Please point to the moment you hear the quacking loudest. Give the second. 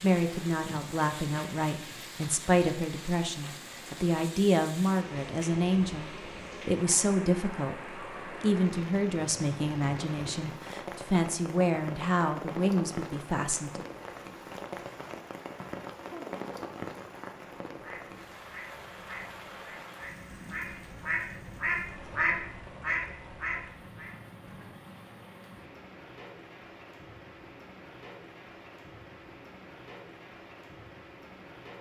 22 s.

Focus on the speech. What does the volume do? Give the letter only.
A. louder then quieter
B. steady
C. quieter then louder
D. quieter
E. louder
B.